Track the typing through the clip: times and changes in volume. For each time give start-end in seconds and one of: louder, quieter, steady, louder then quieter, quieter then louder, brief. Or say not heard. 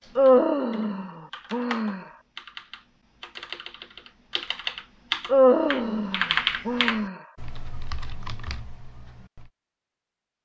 0.0-9.5 louder then quieter.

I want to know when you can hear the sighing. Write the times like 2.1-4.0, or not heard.
0.1-2.0, 5.3-7.2.